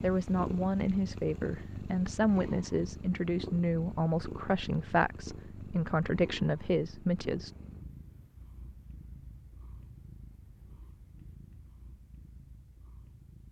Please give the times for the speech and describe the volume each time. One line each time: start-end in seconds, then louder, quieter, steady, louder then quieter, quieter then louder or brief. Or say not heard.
0.0-7.5 steady.